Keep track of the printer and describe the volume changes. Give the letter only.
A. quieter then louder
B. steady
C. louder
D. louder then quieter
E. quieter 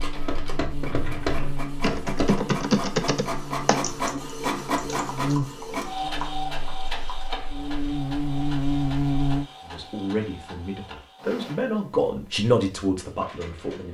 D.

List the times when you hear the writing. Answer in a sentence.
The writing can't be heard in this clip.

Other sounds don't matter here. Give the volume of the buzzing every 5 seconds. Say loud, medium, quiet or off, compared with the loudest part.
medium, loud, off.